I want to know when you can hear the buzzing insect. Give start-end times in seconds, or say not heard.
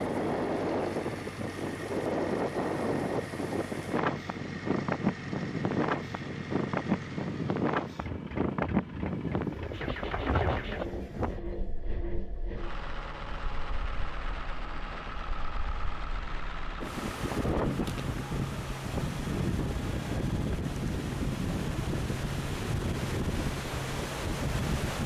not heard.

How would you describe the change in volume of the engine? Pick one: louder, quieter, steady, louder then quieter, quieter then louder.
steady.